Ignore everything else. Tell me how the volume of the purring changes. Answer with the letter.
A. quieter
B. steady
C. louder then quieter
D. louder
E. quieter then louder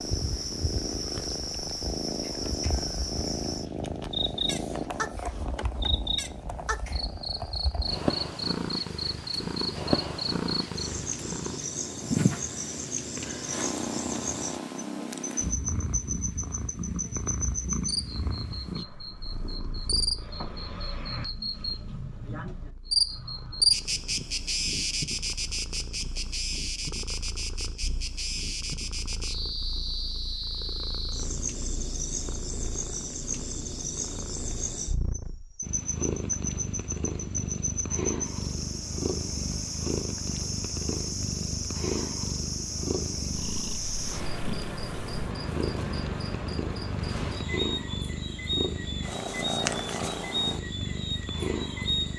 E.